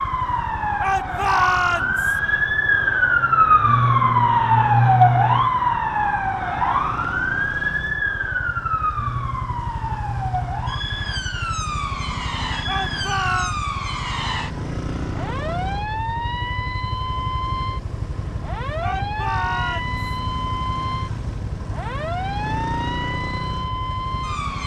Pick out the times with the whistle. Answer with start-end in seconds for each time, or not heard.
not heard.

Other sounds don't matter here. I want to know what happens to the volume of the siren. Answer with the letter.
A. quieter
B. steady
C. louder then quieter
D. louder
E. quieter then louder
A.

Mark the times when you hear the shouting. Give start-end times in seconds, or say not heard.
0.8-2.1, 12.7-13.6, 18.8-20.0.